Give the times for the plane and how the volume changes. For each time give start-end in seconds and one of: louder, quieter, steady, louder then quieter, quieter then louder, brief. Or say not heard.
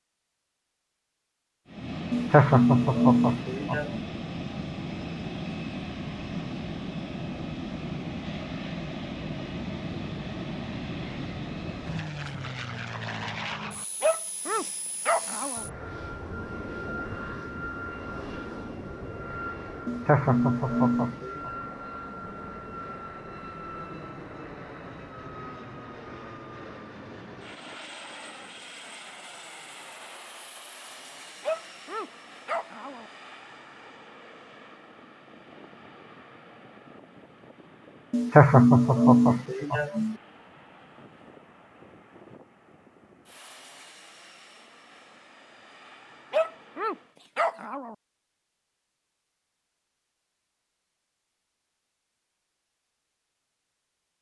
1.6-47.2 quieter.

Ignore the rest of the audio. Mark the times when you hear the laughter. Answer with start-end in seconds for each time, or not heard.
2.1-4.0, 19.9-21.5, 38.1-40.1.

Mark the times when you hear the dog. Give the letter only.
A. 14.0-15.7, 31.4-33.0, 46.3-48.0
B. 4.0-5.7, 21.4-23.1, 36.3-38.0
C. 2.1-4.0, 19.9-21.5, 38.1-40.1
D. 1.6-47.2
A.